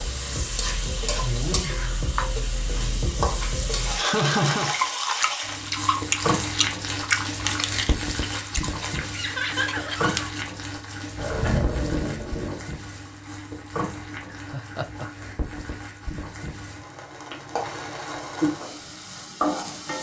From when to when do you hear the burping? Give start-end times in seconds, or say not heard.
not heard.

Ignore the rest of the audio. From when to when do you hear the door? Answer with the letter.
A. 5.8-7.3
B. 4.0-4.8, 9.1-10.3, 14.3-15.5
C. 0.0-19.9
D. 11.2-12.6
D.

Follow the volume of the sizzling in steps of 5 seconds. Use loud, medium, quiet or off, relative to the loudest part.
loud, loud, medium, loud.